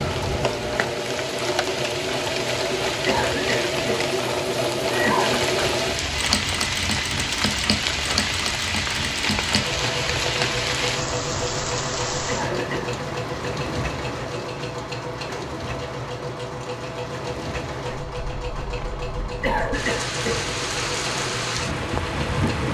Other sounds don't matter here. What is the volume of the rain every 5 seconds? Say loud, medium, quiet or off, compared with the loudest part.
loud, loud, loud, medium, loud.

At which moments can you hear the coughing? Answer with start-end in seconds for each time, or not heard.
3.0-4.1, 4.9-5.5, 12.2-12.9, 19.4-20.4.